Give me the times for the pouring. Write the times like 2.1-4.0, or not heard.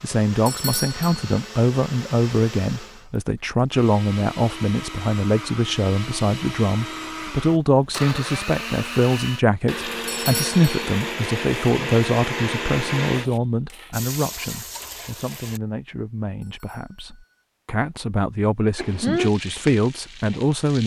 13.9-15.6.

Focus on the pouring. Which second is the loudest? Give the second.
14 s.